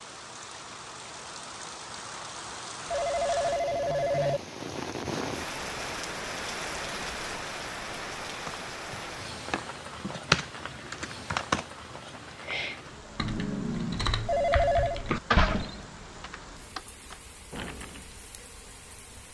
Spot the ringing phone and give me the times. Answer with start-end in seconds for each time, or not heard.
2.9-4.4, 14.2-15.0.